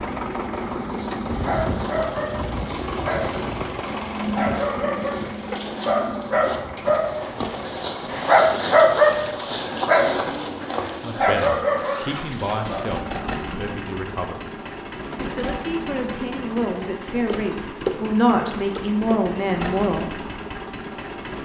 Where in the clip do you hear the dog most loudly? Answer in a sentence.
The loudest moment of the dog is at 9 seconds.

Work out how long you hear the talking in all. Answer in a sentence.
You can hear the talking for 9 seconds altogether.